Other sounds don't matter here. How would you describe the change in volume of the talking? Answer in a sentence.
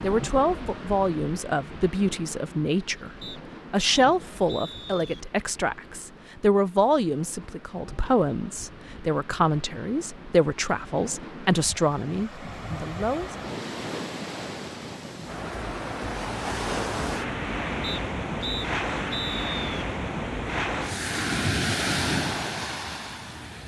The loudness of the talking stays about the same.